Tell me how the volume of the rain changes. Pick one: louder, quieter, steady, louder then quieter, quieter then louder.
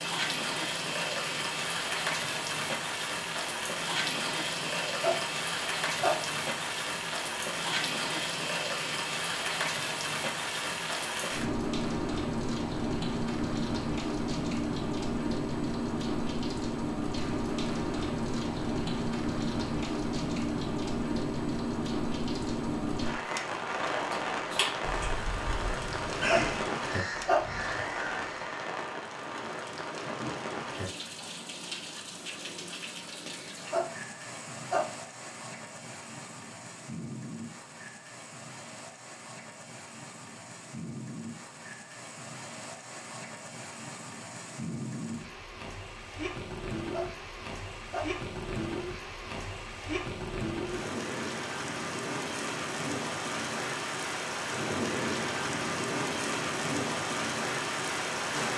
quieter then louder.